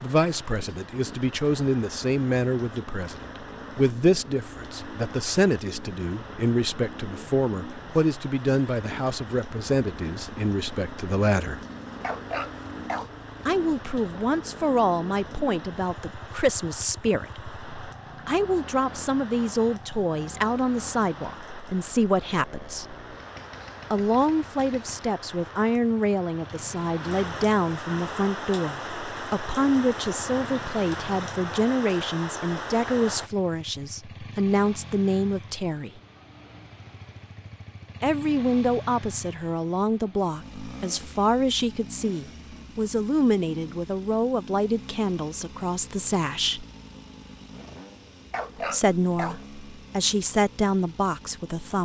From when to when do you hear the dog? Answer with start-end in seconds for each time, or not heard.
12.0-13.2, 48.3-49.5.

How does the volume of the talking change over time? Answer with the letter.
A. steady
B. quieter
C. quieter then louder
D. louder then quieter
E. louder
A.